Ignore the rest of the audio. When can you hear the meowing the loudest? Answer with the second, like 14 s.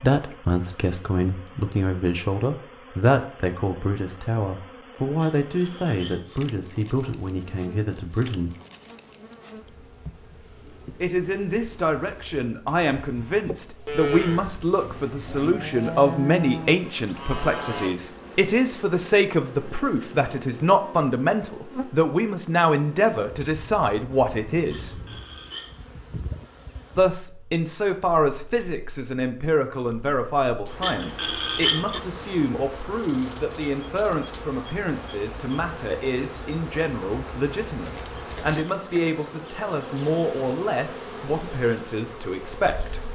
32 s.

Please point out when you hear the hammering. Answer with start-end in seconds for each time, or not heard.
not heard.